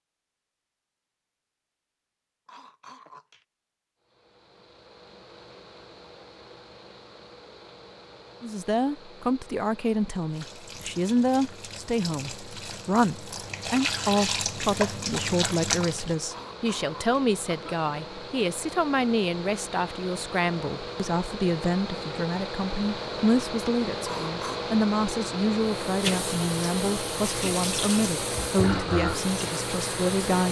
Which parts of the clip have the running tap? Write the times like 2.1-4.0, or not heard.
10.3-16.1, 25.6-30.4.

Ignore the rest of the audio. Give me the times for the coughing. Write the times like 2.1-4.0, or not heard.
2.5-3.5, 16.3-17.9, 24.1-24.7.